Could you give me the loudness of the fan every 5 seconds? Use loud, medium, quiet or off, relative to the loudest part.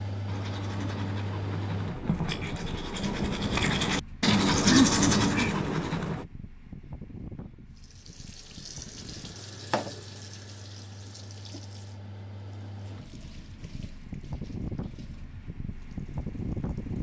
loud, medium, medium, loud.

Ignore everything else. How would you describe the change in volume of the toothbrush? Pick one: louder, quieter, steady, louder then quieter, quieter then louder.
louder.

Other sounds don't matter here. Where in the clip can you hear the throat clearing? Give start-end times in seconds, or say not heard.
4.7-5.5.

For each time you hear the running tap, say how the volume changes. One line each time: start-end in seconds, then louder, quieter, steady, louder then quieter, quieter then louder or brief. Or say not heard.
7.7-16.9 quieter.